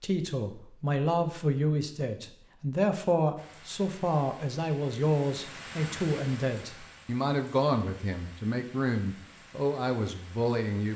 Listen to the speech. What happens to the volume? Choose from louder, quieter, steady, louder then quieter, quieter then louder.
steady.